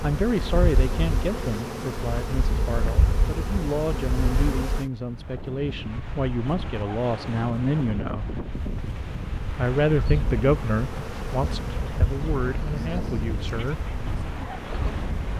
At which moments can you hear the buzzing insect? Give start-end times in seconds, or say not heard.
0.0-4.9, 8.5-15.3.